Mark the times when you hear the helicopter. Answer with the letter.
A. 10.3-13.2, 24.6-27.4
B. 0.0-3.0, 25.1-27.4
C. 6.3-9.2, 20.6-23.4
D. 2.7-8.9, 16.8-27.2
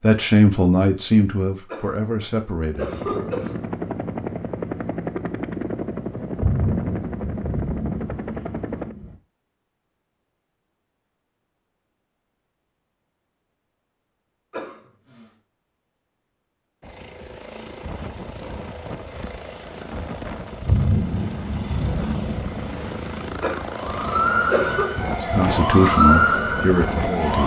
D.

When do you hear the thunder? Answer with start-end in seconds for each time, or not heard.
6.3-9.2, 20.6-23.4.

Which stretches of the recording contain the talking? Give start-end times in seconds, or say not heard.
0.0-3.0, 25.1-27.4.